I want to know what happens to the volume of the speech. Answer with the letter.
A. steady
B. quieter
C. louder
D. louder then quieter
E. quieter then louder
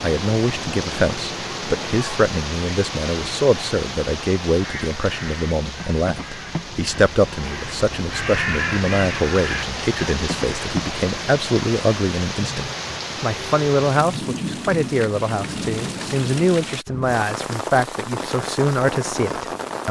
A.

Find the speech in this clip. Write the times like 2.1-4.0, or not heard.
0.0-19.8.